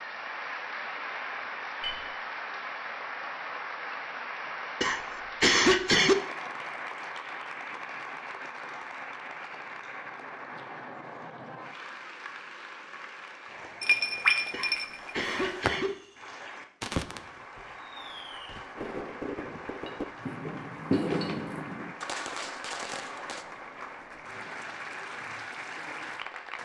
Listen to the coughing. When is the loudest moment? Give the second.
6 s.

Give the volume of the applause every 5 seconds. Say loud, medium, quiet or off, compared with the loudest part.
loud, loud, medium, medium, medium, loud.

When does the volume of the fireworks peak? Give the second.
21 s.